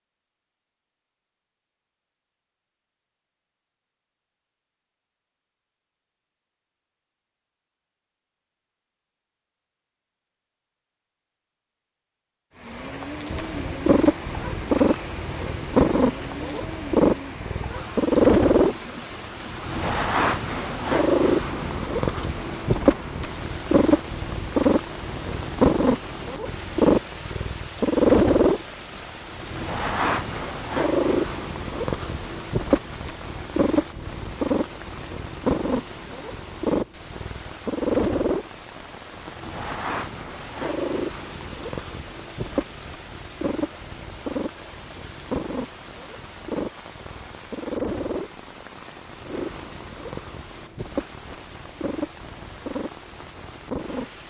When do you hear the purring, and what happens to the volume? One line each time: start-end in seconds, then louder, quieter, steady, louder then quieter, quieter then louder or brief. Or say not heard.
13.3-54.2 quieter.